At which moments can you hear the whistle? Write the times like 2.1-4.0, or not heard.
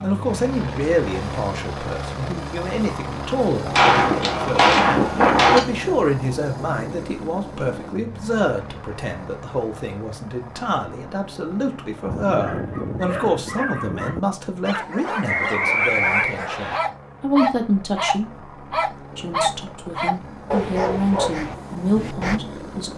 15.2-16.8.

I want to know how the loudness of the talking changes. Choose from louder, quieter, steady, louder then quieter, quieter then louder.
steady.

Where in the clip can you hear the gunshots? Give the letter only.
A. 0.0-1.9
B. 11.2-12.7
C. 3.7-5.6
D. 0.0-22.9
C.